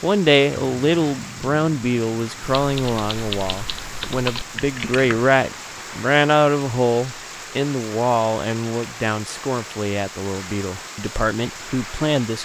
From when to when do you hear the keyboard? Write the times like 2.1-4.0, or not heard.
2.6-5.2.